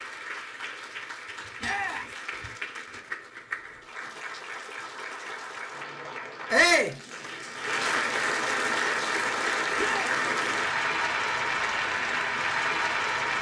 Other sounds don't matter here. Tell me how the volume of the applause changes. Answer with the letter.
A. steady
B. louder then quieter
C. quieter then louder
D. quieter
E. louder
E.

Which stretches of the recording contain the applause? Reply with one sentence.
The applause can be heard from 0.0 to 13.3 s.